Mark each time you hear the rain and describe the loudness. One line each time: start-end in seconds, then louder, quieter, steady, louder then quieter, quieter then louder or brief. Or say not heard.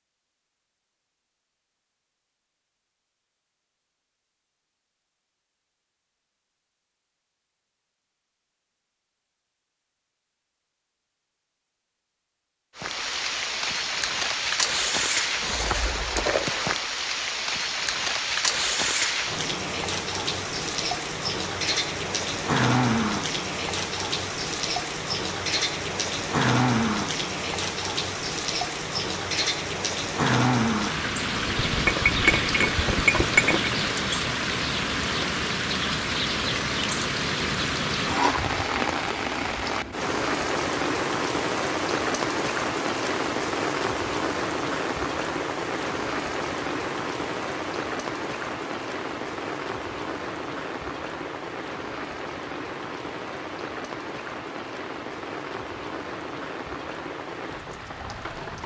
12.8-58.6 quieter.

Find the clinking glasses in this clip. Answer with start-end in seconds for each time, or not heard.
31.4-33.7.